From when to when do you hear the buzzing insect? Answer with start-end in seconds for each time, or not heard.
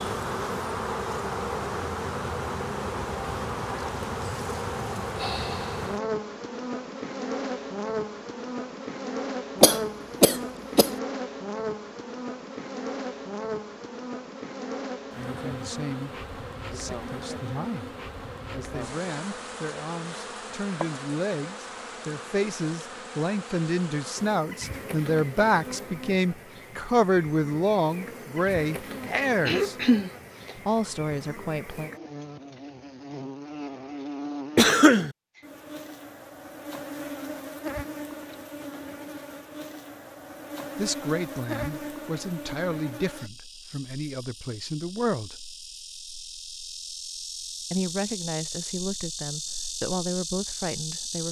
0.0-51.2.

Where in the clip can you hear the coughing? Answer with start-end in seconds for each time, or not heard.
9.6-10.9, 29.4-30.6, 34.5-35.1.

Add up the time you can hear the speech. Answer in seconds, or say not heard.
24 s.